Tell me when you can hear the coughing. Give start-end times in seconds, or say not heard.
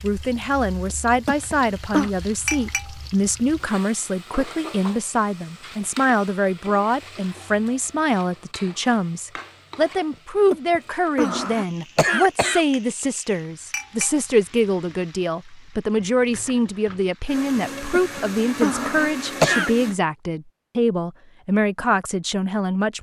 0.9-2.1, 10.5-12.7, 17.9-19.7.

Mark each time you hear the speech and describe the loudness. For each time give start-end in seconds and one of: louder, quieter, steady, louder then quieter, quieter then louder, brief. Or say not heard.
0.0-22.9 steady.